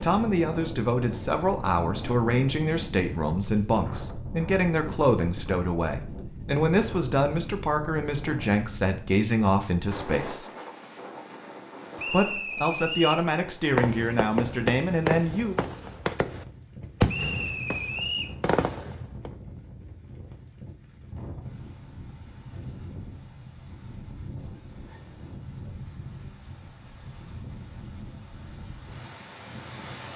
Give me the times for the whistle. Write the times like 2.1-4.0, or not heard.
11.9-13.2, 17.1-18.4.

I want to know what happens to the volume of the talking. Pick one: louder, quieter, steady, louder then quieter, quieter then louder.
steady.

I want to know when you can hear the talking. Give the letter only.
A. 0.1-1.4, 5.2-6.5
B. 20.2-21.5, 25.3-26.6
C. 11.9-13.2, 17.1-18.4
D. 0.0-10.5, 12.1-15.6
D.